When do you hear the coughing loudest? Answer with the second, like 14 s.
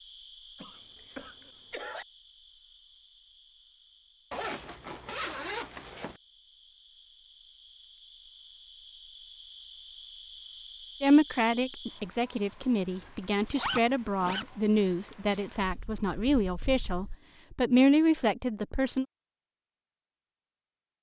2 s.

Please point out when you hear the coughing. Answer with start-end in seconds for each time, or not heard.
0.6-2.0.